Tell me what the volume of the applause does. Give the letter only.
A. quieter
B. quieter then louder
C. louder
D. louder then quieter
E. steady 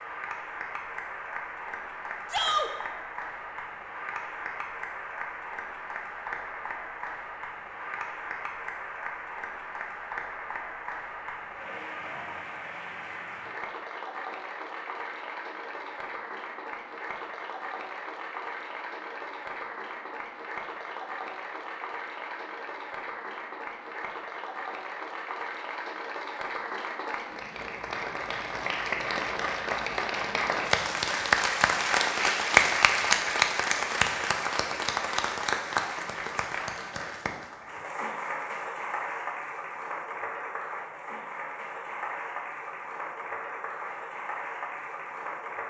D.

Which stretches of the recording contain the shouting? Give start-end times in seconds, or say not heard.
2.3-2.7.